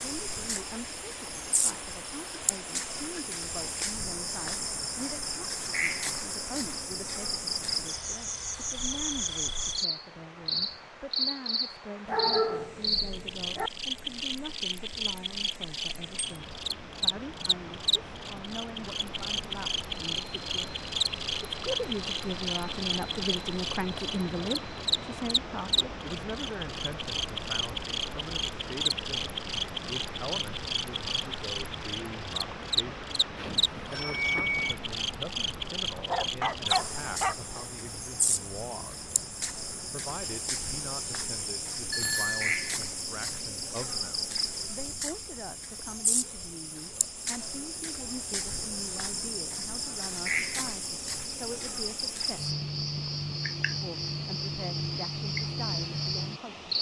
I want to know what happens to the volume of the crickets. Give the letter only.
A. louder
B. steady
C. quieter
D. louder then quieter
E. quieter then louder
B.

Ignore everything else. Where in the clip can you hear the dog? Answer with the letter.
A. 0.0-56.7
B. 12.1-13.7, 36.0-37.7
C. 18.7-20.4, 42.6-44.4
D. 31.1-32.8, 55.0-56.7
B.